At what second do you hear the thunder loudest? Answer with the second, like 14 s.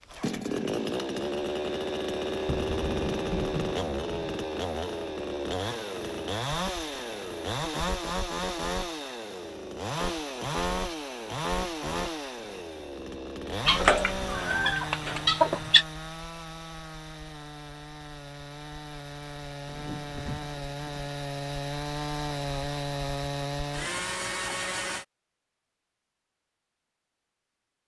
3 s.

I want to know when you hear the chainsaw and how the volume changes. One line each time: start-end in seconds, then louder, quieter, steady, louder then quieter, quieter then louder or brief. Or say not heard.
0.0-25.1 quieter then louder.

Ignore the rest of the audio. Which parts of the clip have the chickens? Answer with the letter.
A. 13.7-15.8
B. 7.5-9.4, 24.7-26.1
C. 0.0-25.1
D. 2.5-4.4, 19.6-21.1
A.